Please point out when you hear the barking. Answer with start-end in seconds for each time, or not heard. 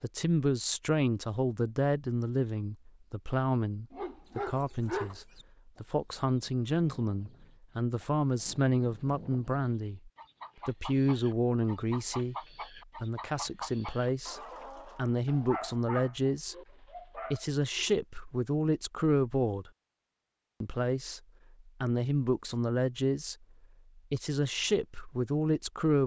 3.9-5.2, 15.2-17.9.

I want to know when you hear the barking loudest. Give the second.
5 s.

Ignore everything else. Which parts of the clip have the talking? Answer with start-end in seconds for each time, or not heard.
0.0-12.3, 12.9-16.6, 17.1-19.7, 20.6-23.4, 23.9-26.0.